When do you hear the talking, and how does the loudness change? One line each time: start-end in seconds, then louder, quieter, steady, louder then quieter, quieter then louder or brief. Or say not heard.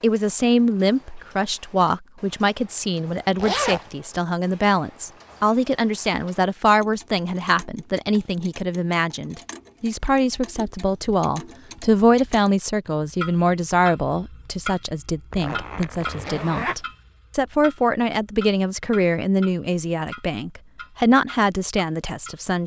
0.0-22.6 steady.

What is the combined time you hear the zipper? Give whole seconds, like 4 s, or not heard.
2 s.